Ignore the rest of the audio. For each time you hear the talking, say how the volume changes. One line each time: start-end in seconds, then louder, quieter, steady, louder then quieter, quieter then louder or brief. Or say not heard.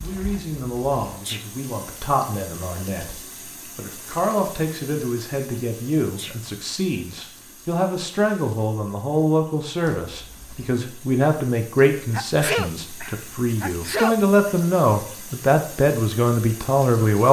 0.0-17.2 louder.